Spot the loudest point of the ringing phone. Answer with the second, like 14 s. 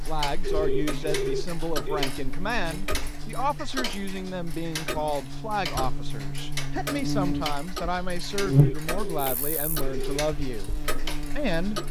1 s.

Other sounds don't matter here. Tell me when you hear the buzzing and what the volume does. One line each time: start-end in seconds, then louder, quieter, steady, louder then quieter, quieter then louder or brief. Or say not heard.
0.1-11.8 louder then quieter.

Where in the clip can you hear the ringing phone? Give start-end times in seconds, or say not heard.
0.4-2.1, 8.5-10.2.